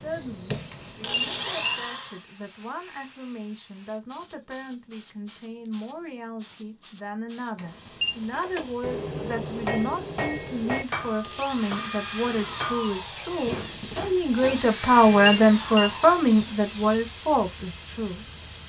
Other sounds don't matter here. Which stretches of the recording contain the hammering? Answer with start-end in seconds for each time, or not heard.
8.3-14.8.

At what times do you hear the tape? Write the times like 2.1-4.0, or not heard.
not heard.